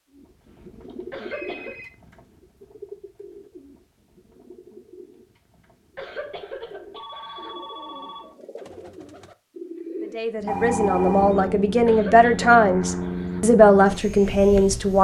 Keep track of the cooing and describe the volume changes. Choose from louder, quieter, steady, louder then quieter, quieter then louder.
quieter then louder.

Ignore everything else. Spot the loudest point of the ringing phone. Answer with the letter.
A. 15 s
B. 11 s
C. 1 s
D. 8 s
B.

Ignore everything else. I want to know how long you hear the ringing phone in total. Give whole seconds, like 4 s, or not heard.
4 s.